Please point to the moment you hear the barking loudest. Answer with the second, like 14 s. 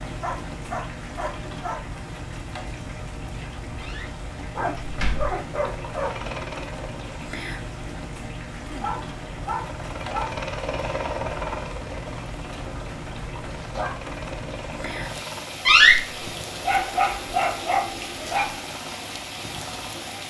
17 s.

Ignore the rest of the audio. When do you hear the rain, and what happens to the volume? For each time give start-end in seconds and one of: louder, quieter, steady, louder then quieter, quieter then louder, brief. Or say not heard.
0.0-20.2 steady.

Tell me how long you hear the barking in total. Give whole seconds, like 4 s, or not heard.
7 s.